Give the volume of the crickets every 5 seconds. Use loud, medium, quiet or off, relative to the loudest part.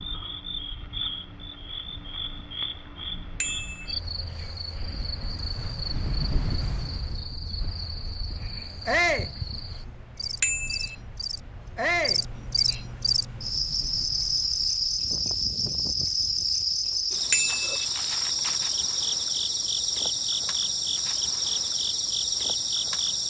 medium, quiet, loud, loud, loud.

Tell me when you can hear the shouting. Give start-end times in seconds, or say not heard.
8.8-9.3, 11.8-12.2.